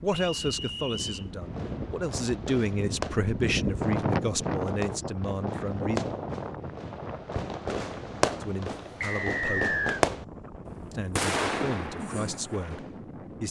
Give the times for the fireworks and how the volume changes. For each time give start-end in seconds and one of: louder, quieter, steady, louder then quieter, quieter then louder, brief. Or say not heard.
1.4-12.9 louder.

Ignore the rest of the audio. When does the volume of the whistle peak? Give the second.
10 s.